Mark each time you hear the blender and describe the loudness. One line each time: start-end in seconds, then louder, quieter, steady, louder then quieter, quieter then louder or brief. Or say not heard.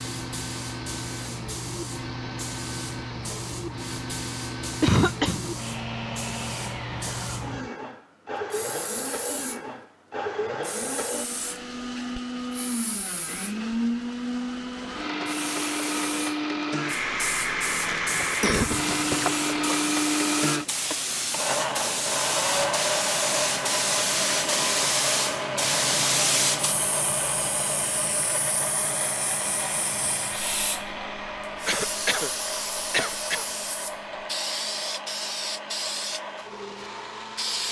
0.0-37.6 louder then quieter.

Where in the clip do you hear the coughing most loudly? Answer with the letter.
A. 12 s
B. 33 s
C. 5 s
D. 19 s
C.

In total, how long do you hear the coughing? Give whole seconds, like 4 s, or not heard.
4 s.